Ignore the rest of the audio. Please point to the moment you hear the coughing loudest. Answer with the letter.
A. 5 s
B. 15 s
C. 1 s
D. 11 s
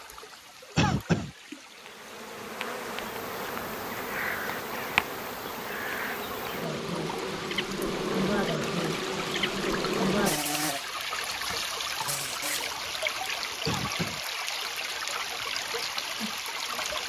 C.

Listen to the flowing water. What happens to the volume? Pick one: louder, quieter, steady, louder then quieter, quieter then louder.
louder.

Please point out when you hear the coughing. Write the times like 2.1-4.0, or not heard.
0.8-1.3, 13.7-14.2.